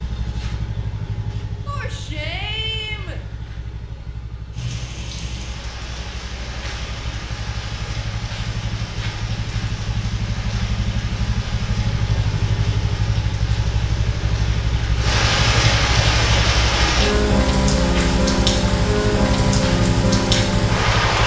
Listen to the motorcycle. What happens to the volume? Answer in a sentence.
The loudness of the motorcycle goes up.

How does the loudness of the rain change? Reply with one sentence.
The volume of the rain goes up.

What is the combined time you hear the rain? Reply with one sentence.
The rain can be heard for 17 seconds in total.